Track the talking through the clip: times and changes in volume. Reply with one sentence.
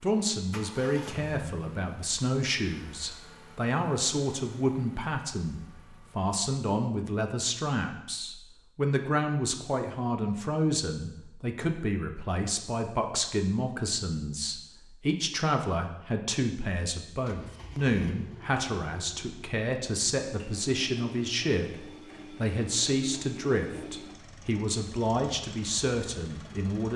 The talking can be heard from 0.0 to 26.9 s, at a steady volume.